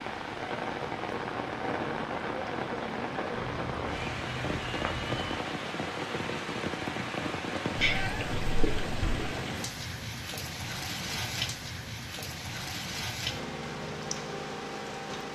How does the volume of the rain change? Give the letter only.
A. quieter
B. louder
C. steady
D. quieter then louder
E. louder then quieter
C.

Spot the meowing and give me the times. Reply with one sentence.
The meowing can be heard from 3.4 to 5.3 s and from 7.8 to 9.2 s.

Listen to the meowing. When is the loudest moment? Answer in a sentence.
The volume of the meowing peaks at 8 seconds.